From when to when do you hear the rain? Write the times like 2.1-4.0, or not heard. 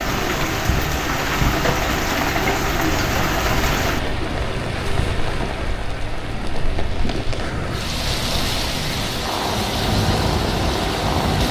0.0-11.4.